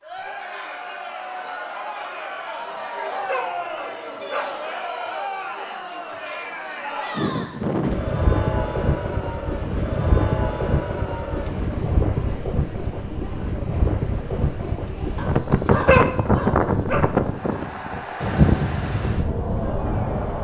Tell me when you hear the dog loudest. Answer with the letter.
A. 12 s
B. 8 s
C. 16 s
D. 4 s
C.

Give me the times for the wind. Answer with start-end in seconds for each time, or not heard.
7.2-20.3.